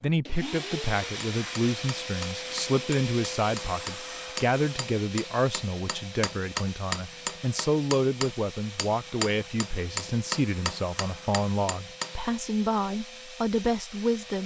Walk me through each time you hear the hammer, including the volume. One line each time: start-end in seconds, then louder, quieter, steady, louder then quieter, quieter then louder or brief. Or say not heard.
1.2-12.2 louder.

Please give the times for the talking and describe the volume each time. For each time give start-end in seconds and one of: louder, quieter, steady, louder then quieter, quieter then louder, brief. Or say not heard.
0.0-14.4 steady.